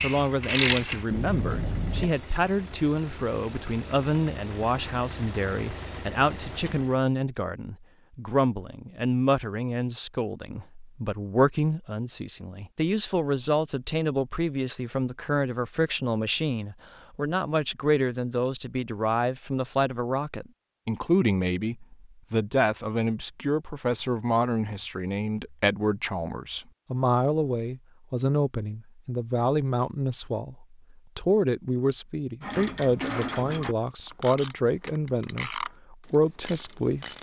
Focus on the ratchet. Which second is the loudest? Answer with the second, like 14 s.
1 s.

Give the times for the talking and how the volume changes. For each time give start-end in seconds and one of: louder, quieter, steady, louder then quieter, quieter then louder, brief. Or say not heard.
0.0-37.0 steady.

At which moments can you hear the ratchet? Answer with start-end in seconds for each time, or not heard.
0.0-2.1, 32.4-37.1.